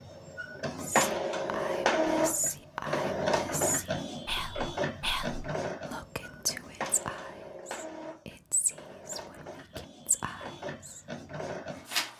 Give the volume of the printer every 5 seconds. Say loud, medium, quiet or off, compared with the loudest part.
loud, medium, medium.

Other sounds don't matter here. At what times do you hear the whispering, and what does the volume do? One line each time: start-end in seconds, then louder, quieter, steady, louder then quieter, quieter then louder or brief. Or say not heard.
0.8-11.0 steady.